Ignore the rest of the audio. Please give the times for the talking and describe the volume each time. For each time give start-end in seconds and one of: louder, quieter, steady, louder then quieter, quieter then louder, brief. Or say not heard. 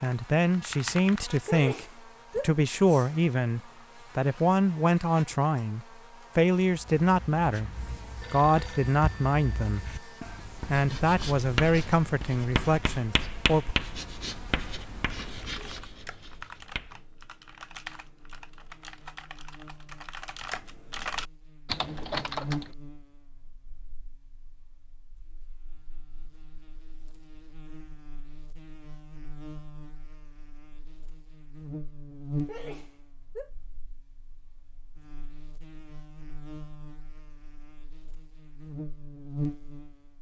0.0-13.8 steady.